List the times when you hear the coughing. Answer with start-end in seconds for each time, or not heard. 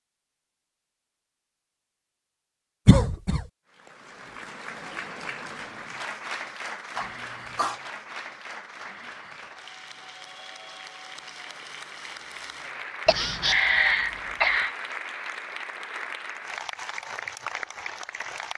2.9-3.5, 7.0-7.8, 13.1-14.7.